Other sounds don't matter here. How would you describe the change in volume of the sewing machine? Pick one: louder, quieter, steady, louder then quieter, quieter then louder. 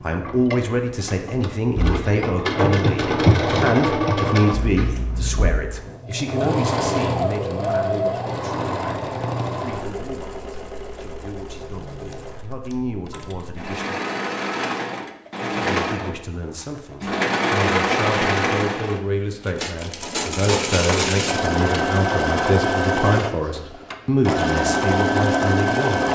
quieter then louder.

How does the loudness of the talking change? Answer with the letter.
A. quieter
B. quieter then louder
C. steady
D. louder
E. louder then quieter
B.